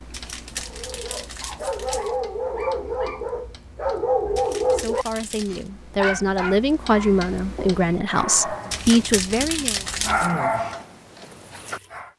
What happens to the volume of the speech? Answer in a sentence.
The loudness of the speech goes up.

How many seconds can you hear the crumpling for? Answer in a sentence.
You can hear the crumpling for 5 seconds altogether.